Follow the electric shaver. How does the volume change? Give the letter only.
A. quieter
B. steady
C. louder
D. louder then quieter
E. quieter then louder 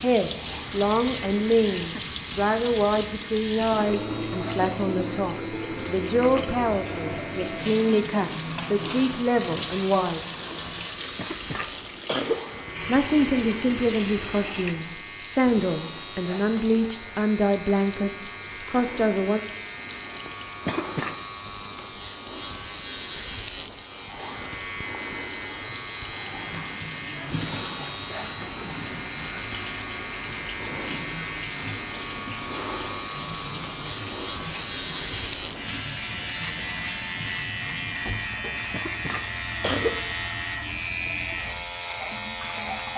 C.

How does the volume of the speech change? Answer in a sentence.
The loudness of the speech stays about the same.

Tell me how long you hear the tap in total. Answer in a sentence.
You can hear the tap for 43 seconds altogether.